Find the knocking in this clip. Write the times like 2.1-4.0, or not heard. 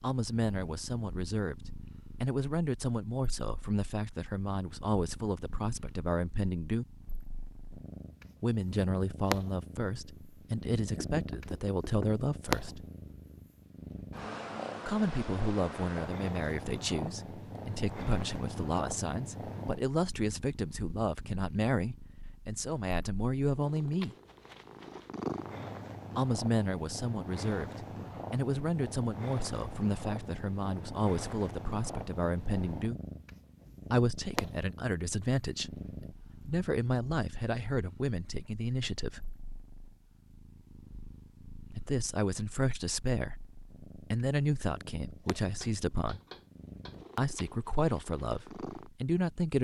11.0-12.2, 45.5-47.0.